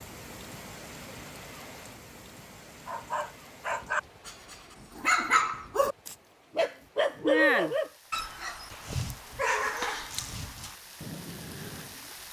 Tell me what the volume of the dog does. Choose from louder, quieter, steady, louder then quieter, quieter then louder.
louder then quieter.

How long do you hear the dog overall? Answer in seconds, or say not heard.
9 s.